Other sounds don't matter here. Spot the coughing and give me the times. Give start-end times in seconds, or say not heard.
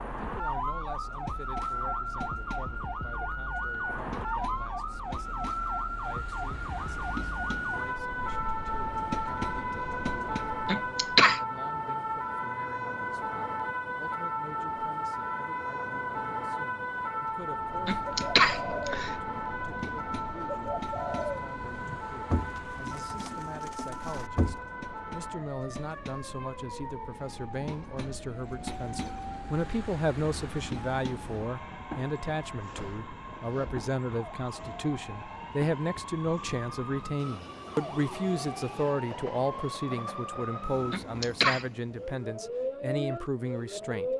10.7-11.4, 17.9-19.1, 40.9-41.6.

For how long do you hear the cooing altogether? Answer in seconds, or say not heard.
7 s.